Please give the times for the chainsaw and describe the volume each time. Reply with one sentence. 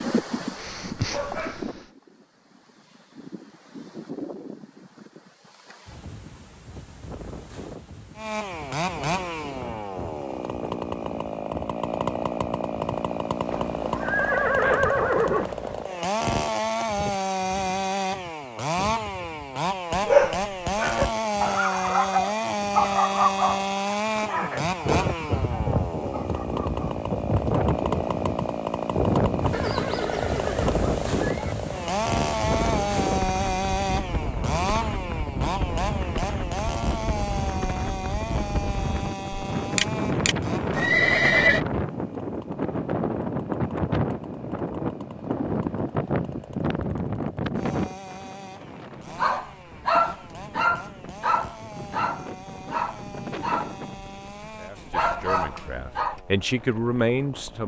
You can hear the chainsaw from 8.2 to 57.6 s, getting quieter.